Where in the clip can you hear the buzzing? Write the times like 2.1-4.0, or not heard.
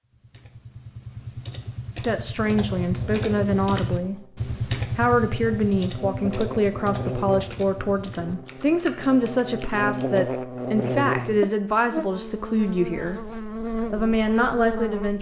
2.5-15.1.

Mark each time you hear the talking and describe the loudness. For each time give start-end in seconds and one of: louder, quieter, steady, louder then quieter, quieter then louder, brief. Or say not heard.
2.0-13.3 steady
13.9-15.1 brief.